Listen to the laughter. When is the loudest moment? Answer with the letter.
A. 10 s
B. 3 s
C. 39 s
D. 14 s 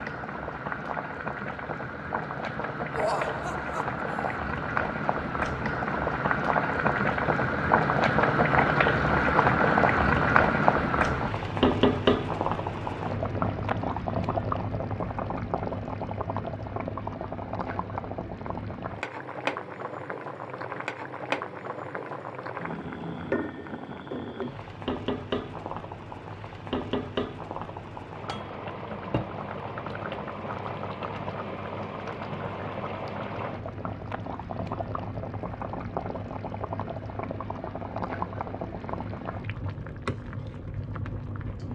B.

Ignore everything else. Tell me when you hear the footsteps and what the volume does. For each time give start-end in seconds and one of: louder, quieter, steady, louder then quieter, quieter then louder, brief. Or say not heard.
not heard.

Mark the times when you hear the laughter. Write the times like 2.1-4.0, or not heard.
3.0-4.4.